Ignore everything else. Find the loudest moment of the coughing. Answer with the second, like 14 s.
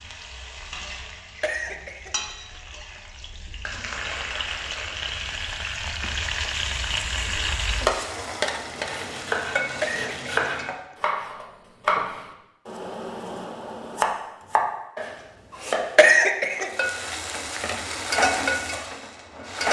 16 s.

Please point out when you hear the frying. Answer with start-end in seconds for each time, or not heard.
0.0-10.8, 16.6-19.6.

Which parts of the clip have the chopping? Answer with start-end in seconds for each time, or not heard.
8.5-16.6.